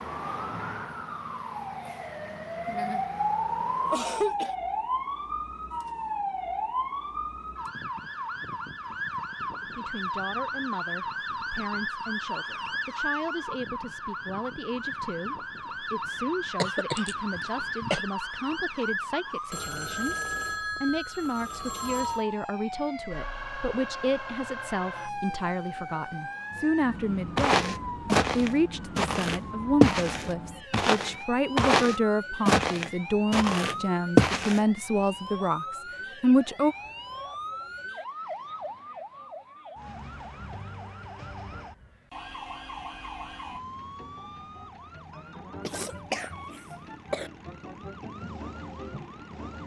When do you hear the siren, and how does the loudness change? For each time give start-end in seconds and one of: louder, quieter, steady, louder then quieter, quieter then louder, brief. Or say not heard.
0.0-49.6 quieter.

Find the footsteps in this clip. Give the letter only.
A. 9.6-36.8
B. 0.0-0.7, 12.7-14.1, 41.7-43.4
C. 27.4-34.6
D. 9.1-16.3
C.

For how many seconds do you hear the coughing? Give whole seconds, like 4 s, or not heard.
4 s.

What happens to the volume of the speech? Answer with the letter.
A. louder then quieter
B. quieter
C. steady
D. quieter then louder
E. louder
E.